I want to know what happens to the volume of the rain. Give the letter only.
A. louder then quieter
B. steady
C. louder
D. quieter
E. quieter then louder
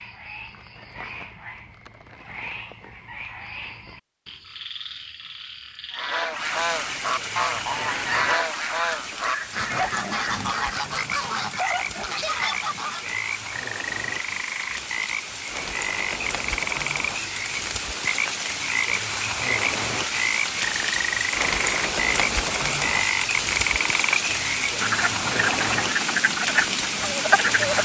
C.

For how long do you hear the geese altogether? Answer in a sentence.
The geese can be heard for 7 seconds in total.